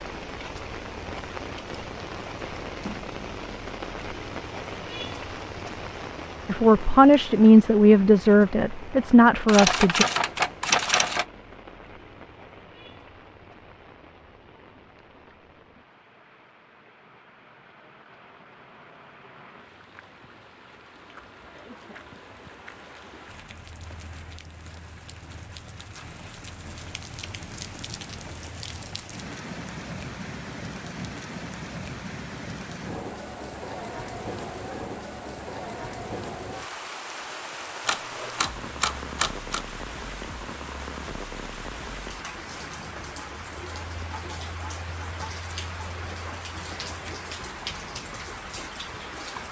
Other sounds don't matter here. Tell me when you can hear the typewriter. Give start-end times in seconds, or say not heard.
9.4-11.2, 37.9-39.6.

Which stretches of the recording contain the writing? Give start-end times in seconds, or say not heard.
not heard.